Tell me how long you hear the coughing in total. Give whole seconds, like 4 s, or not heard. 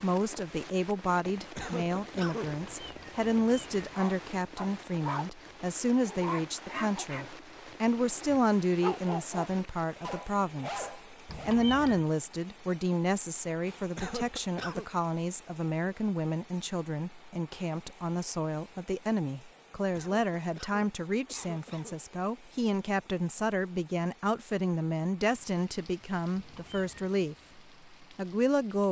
4 s.